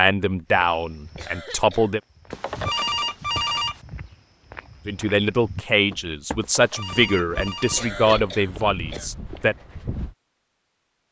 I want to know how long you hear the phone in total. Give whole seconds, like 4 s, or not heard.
3 s.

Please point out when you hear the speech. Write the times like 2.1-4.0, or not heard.
0.0-2.0, 4.8-9.6.